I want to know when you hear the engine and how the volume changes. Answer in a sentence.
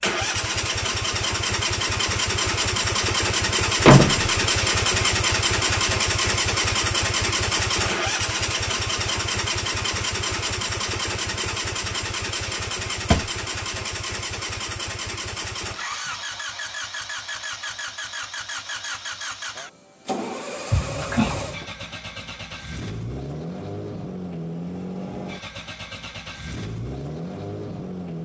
The engine can be heard from 0.0 to 28.2 s, getting quieter.